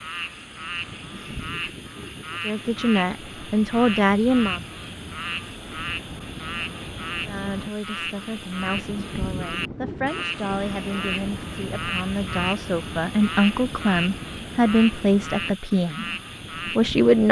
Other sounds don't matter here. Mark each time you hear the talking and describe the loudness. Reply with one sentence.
The talking can be heard briefly from 2.4 to 4.6 s; from 7.2 to 16.1 s, getting louder; and briefly from 16.8 to 17.2 s.